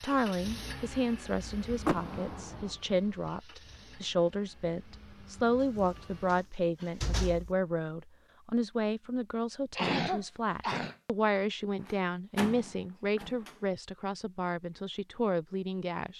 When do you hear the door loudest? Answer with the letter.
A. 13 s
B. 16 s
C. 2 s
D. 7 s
C.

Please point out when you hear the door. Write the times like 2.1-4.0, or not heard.
1.8-2.7, 5.8-7.5, 11.8-13.6.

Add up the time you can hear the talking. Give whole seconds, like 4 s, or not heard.
16 s.